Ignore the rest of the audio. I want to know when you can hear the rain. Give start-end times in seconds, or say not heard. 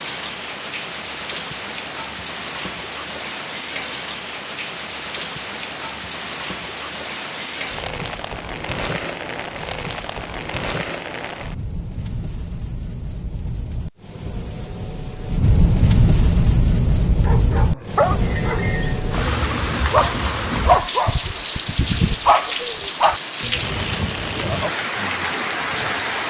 0.0-26.2.